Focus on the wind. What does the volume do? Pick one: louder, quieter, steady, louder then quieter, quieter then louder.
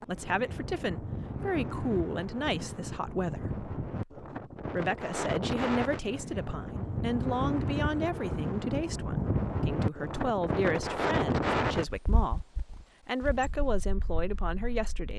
louder then quieter.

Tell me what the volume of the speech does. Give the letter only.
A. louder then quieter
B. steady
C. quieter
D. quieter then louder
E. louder
B.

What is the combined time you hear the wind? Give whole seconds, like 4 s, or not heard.
15 s.